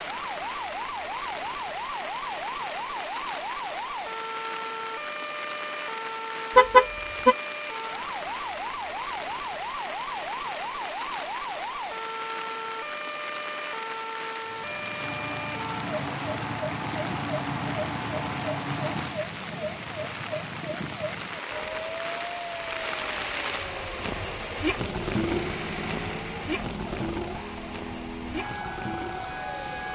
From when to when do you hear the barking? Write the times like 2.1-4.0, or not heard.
not heard.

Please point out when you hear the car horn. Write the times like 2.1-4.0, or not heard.
6.5-7.3.